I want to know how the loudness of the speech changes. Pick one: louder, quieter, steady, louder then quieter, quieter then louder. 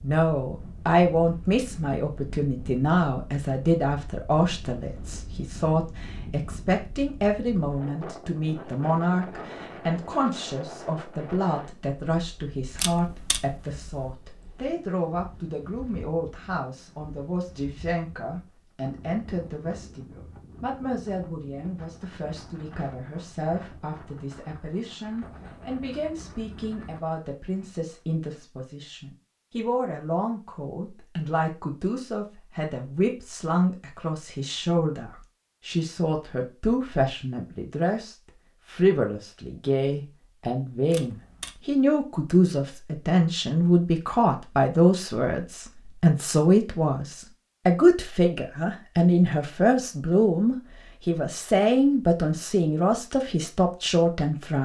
quieter then louder.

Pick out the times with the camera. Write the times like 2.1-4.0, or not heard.
12.8-14.1, 40.9-41.5.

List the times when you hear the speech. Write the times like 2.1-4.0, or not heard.
0.0-54.5.